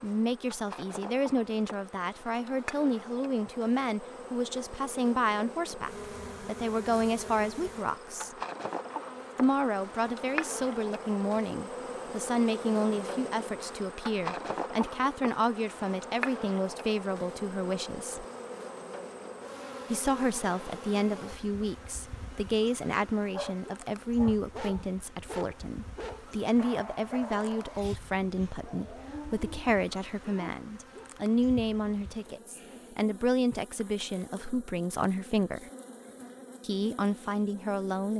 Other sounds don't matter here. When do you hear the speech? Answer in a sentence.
The speech can be heard from 0.0 to 8.3 s, from 9.3 to 18.2 s, from 19.9 to 35.6 s and from 36.6 to 38.1 s.